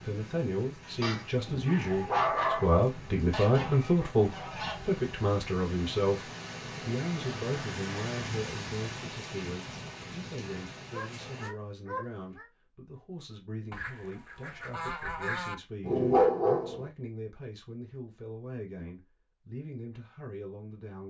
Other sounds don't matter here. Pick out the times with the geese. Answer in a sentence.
The geese can be heard from 3.3 to 4.9 s and from 13.7 to 15.6 s.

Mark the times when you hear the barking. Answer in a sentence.
The barking can be heard from 1.0 to 2.8 s, from 10.9 to 12.4 s and from 15.8 to 16.9 s.